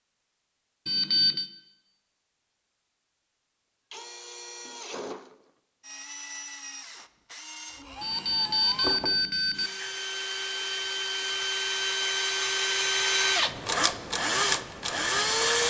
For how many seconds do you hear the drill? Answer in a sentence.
The drill can be heard for 12 seconds in total.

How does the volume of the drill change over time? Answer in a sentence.
The volume of the drill goes up.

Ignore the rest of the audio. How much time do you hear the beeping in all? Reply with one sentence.
You can hear the beeping for 2 seconds altogether.